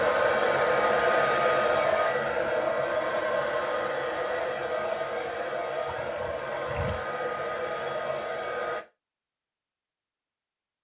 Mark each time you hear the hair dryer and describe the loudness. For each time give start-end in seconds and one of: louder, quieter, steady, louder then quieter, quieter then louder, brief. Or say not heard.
0.0-8.8 quieter.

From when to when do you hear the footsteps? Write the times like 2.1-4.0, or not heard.
not heard.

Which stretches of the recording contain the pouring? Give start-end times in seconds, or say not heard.
5.8-7.0.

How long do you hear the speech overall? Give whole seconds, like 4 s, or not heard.
not heard.